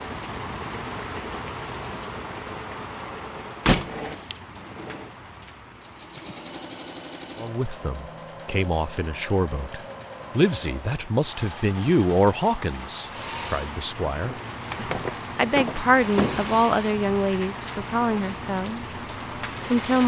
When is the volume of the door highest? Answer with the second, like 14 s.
4 s.